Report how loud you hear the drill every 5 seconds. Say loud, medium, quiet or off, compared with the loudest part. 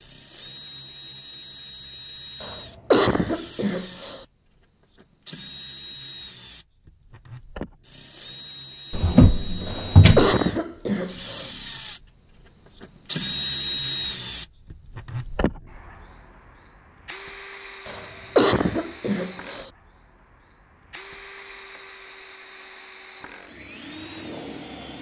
medium, medium, loud, medium, medium.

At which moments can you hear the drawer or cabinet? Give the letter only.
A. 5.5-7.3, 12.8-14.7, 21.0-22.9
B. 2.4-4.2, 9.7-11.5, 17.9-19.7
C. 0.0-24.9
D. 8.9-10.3
D.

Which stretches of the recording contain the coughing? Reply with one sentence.
You can hear the coughing from 2.4 to 4.2 s, from 9.7 to 11.5 s and from 17.9 to 19.7 s.